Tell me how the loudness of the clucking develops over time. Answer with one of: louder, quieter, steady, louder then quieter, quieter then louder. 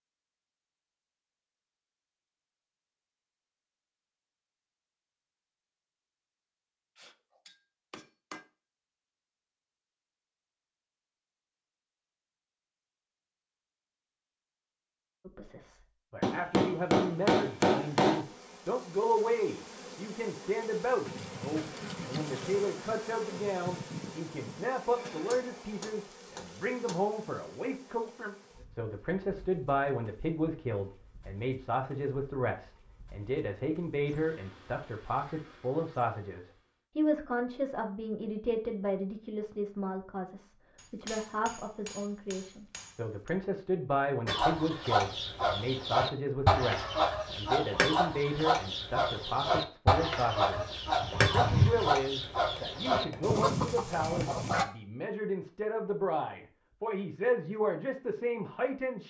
steady.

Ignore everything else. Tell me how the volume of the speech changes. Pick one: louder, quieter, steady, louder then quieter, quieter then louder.
steady.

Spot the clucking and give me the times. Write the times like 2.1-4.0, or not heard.
44.2-54.6.